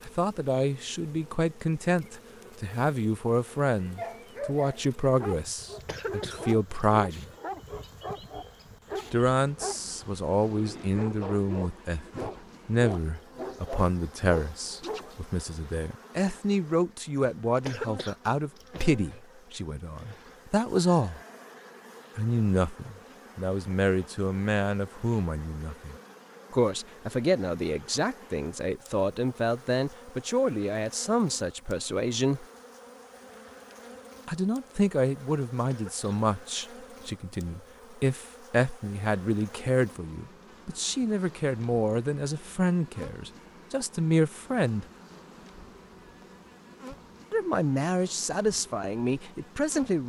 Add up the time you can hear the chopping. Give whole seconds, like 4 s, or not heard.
not heard.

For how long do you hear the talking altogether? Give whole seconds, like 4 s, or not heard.
43 s.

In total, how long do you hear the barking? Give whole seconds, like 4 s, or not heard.
11 s.